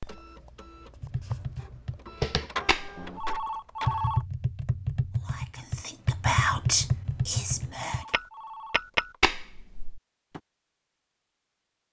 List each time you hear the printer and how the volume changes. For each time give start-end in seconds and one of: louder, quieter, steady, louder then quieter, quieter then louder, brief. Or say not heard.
0.0-4.1 louder then quieter.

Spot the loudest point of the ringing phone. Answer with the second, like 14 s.
4 s.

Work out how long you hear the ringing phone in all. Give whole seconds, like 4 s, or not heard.
3 s.